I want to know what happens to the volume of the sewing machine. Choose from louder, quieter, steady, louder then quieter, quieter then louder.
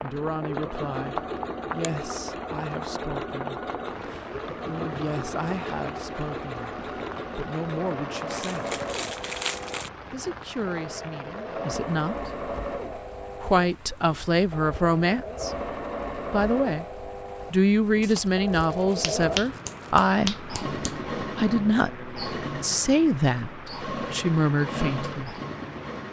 steady.